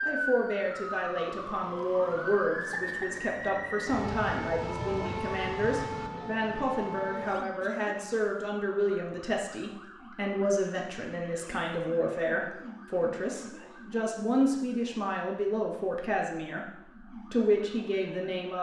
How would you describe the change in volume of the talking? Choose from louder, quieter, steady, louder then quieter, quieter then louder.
steady.